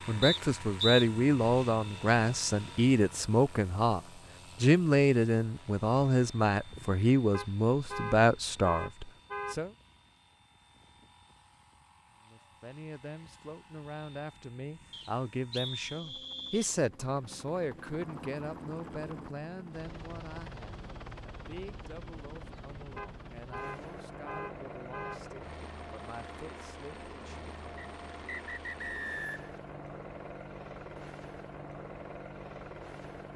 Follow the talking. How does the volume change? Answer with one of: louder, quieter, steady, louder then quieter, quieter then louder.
quieter.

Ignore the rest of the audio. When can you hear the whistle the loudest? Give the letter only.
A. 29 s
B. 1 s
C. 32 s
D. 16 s
B.